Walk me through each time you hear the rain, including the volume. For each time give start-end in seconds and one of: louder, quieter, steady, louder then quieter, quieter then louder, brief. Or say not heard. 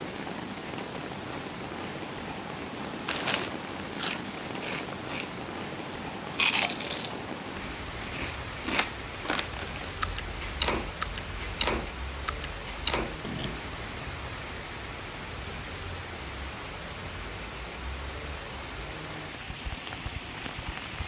0.0-21.0 steady.